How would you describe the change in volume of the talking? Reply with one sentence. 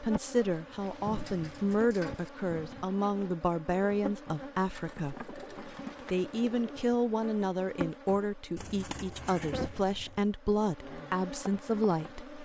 The loudness of the talking stays about the same.